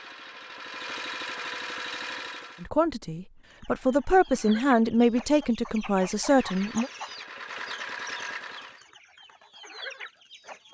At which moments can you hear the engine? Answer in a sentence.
You can hear the engine from 0.0 to 2.7 s and from 6.2 to 8.8 s.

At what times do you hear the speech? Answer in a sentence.
The speech can be heard from 2.6 to 6.9 s.